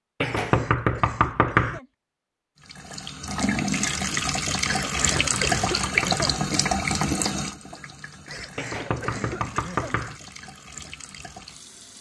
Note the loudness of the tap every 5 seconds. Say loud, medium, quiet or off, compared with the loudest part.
loud, loud, quiet.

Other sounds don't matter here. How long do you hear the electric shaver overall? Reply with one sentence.
The electric shaver can't be heard in this clip.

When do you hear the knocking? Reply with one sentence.
The knocking can be heard from 0.2 to 1.8 s, from 4.8 to 6.2 s and from 8.6 to 10.2 s.